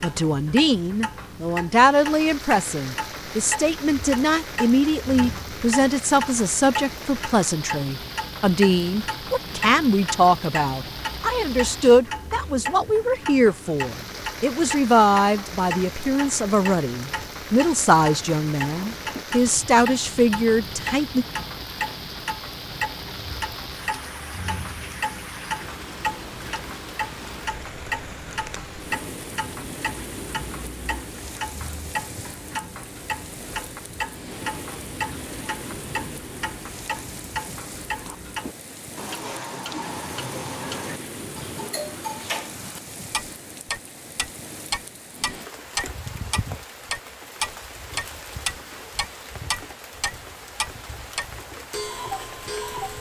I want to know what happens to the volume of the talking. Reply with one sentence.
The loudness of the talking stays about the same.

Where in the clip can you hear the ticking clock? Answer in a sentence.
The ticking clock can be heard from 0.0 to 52.9 s.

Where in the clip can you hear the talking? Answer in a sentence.
The talking can be heard from 0.0 to 21.2 s.